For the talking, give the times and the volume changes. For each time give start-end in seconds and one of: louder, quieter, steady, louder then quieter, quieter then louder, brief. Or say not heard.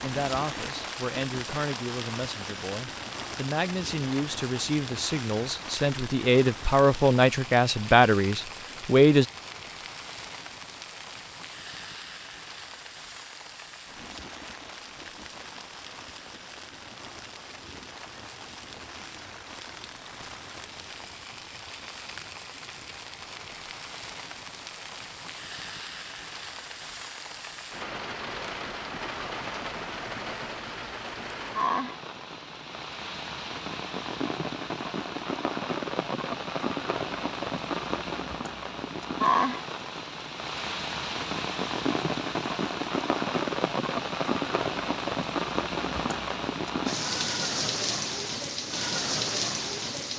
0.0-9.2 louder.